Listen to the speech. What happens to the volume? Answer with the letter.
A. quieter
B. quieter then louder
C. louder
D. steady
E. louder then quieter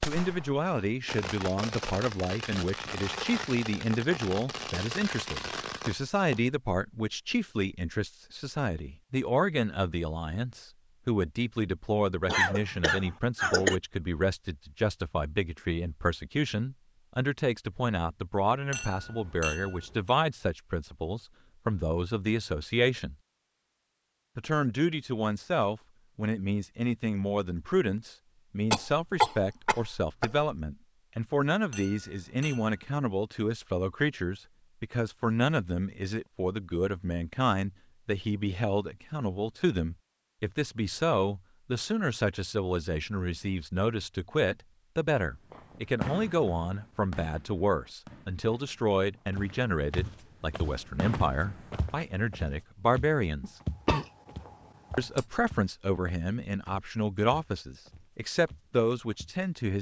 D.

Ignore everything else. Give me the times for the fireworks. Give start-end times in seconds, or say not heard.
0.0-6.4, 45.5-52.0.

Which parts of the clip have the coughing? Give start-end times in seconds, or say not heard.
12.2-13.8, 28.7-30.6, 53.4-55.2.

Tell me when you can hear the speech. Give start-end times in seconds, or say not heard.
0.1-23.1, 24.4-53.5, 55.0-59.7.